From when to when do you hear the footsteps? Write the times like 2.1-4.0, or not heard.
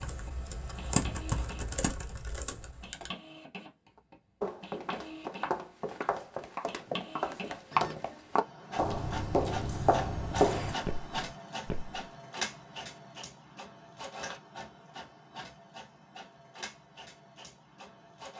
4.4-12.0.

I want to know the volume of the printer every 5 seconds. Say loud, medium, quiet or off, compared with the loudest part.
medium, loud, loud, medium.